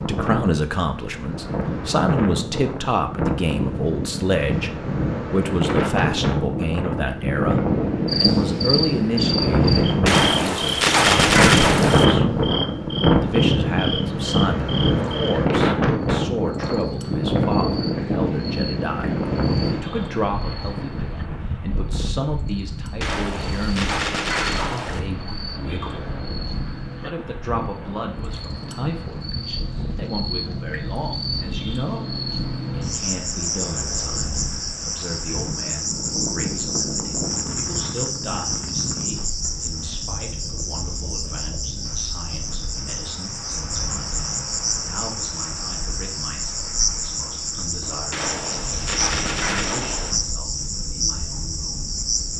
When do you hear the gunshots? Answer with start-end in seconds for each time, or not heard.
10.1-12.1, 23.0-25.0, 48.1-50.1.